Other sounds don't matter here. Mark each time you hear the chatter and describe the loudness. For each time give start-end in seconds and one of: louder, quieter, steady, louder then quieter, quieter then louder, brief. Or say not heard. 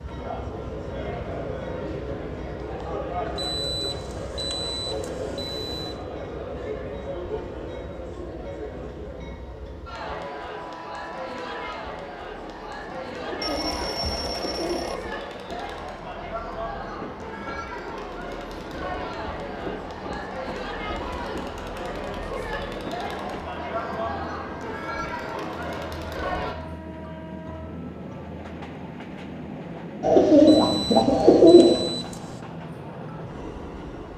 0.0-26.6 steady.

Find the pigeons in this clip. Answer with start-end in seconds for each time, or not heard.
13.2-15.0, 30.0-31.9.